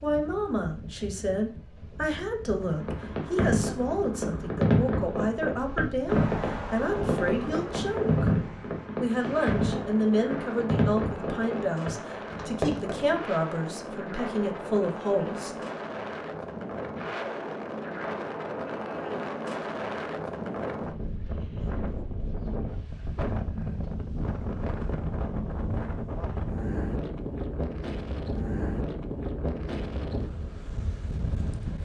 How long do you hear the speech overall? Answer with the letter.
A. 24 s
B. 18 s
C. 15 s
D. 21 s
C.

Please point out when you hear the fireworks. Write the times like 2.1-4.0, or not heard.
2.6-13.0.